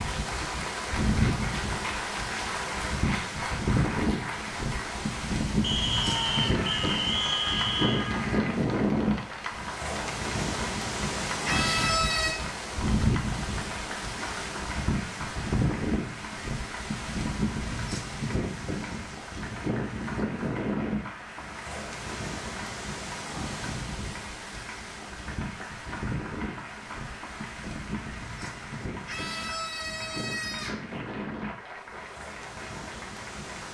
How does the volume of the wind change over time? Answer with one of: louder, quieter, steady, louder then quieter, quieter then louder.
quieter.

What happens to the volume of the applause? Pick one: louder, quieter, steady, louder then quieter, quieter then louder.
quieter.